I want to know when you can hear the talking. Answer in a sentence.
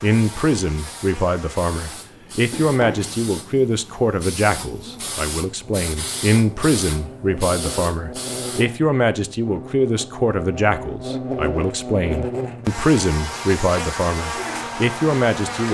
The talking can be heard from 0.0 to 15.6 s.